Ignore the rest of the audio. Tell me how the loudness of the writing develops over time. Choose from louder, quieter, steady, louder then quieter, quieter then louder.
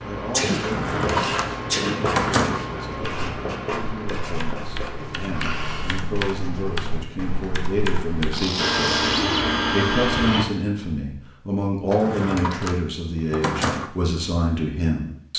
quieter.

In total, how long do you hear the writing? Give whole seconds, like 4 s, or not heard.
7 s.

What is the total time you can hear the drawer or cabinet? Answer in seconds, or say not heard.
4 s.